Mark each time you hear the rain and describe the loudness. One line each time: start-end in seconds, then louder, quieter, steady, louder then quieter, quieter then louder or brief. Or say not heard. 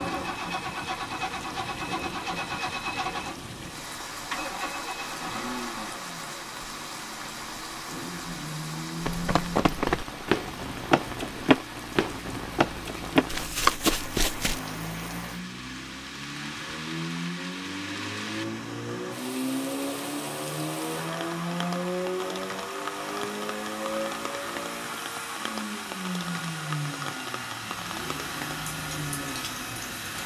0.0-30.2 steady.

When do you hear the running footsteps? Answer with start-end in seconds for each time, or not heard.
9.1-14.6.